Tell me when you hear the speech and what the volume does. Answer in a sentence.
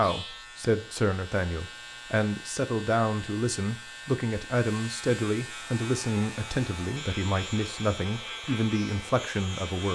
The speech can be heard from 0.0 to 9.9 s, at a steady volume.